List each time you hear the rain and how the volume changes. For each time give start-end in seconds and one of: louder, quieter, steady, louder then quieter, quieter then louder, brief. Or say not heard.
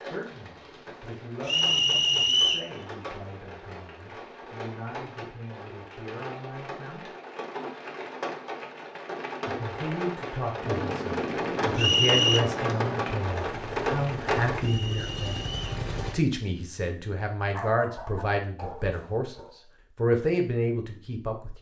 0.0-14.7 louder.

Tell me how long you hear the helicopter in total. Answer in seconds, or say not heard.
6 s.